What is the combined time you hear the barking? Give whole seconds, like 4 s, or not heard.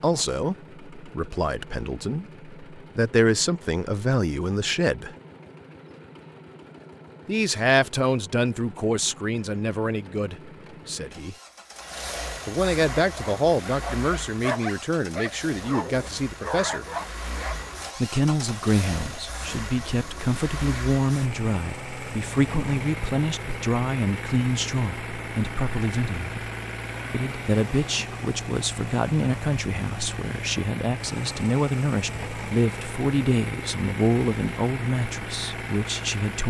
5 s.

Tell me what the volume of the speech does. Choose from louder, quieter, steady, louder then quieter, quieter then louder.
steady.